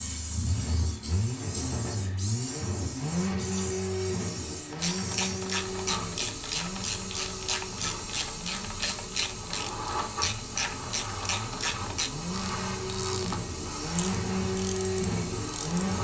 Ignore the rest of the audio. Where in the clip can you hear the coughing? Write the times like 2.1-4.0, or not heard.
not heard.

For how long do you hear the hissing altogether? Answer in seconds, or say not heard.
16 s.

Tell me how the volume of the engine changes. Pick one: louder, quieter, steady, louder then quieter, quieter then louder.
quieter then louder.